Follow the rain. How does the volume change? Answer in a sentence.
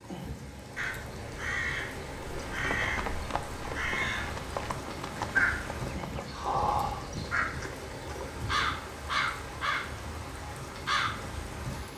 The loudness of the rain stays about the same.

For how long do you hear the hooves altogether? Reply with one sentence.
You can hear the hooves for 6 seconds altogether.